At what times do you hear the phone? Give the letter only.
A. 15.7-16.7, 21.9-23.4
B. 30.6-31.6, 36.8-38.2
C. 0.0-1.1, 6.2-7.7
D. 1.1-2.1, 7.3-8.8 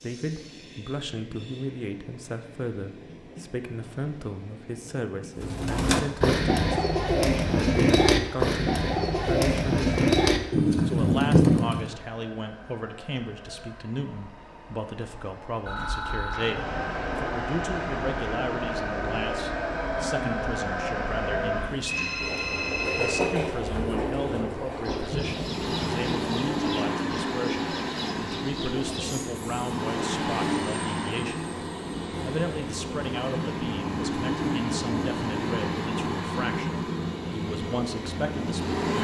A.